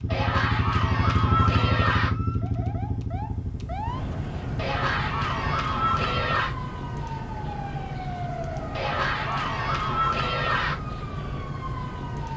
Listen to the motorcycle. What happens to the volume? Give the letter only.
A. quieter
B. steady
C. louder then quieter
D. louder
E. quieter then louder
A.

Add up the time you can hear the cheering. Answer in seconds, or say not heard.
6 s.